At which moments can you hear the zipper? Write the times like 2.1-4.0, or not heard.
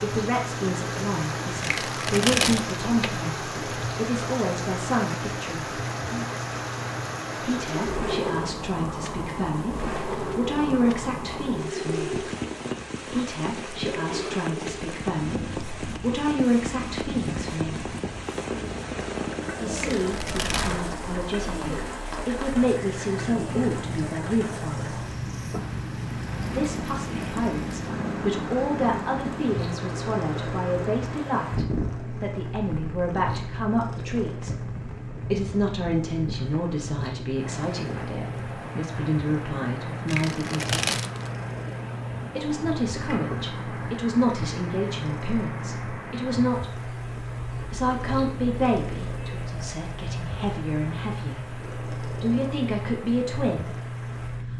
20.1-20.9.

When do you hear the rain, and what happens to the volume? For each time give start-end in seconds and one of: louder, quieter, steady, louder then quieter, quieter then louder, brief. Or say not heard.
0.0-54.5 quieter.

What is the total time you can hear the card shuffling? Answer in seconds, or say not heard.
4 s.